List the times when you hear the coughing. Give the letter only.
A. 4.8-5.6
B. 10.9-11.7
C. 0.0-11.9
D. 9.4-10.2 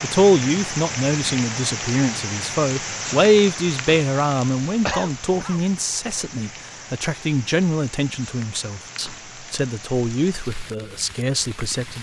A.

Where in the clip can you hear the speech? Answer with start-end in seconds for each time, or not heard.
0.0-11.9.